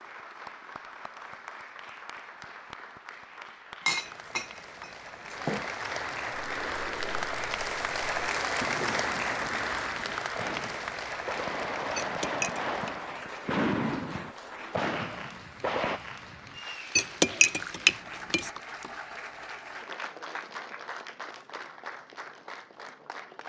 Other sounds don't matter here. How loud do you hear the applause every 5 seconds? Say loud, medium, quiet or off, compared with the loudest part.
quiet, loud, medium, medium, medium.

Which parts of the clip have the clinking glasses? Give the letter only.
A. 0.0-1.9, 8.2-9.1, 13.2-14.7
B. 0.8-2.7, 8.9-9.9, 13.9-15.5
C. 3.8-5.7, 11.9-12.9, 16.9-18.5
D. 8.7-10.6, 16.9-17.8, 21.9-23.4
C.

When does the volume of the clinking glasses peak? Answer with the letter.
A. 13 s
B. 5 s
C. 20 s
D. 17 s
D.